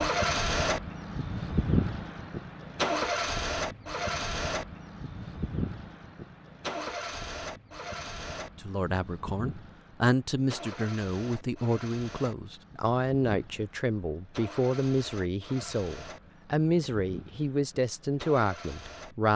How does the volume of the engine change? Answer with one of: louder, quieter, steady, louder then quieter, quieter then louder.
quieter.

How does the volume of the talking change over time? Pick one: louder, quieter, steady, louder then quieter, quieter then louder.
steady.